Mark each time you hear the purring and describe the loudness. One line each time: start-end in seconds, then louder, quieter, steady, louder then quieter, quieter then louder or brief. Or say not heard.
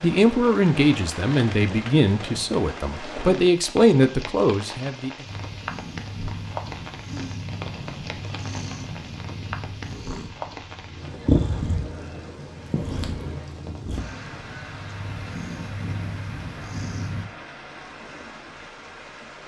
5.2-17.2 louder then quieter.